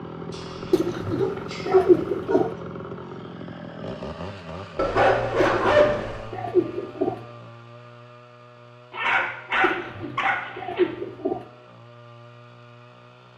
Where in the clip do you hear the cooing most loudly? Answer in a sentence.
The loudest moment of the cooing is at 2 seconds.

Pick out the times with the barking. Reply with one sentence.
The barking can be heard from 0.3 to 2.5 s, from 4.8 to 6.2 s and from 8.9 to 10.8 s.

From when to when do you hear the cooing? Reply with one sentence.
The cooing can be heard from 0.7 to 2.5 s, from 5.3 to 7.2 s and from 9.6 to 11.4 s.